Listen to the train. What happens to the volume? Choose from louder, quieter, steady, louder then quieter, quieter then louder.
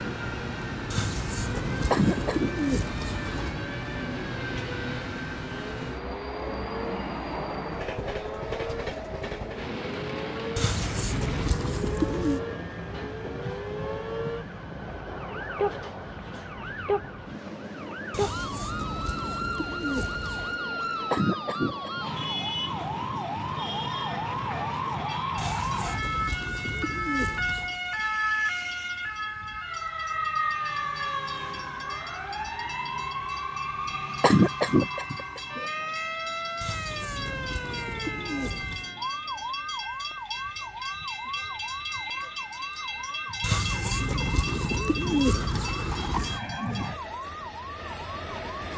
quieter then louder.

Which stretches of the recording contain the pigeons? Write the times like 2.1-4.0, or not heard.
0.9-3.5, 10.6-12.4, 18.1-20.6, 25.4-27.8, 36.6-38.9, 43.4-46.4.